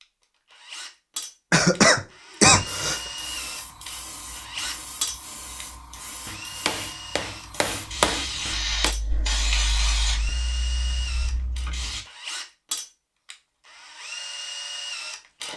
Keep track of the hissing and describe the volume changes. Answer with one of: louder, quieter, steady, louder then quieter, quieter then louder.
louder then quieter.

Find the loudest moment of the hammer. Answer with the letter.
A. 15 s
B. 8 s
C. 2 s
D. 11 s
B.